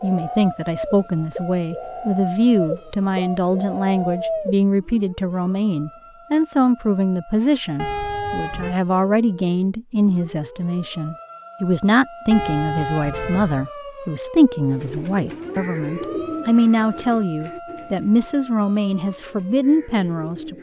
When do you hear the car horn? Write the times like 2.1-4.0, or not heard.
7.8-8.8, 12.3-13.7.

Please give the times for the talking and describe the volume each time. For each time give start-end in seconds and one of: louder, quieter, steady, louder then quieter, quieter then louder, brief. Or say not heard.
0.0-20.5 steady.